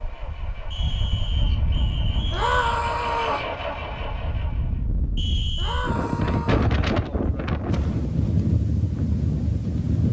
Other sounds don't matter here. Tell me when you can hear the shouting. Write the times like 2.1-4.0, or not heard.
2.3-3.5, 5.5-6.8.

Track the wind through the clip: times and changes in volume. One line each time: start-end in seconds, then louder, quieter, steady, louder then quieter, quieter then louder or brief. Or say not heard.
0.0-10.0 quieter then louder.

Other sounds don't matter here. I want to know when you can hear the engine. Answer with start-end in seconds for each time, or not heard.
0.0-4.9.